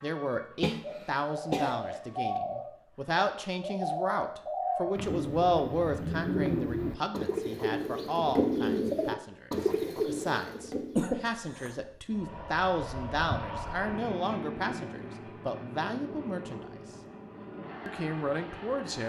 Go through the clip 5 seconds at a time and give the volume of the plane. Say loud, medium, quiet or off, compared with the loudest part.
off, off, loud, medium.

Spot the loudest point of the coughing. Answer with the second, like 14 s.
11 s.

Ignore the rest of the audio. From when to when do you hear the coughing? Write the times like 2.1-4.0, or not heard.
0.6-1.8, 10.9-11.9.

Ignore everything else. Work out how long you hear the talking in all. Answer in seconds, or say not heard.
18 s.